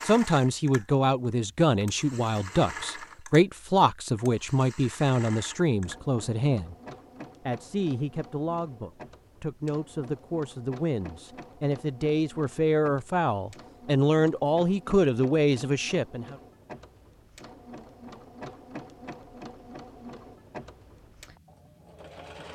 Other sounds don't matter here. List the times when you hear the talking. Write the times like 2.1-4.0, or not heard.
0.0-6.8, 7.5-16.4.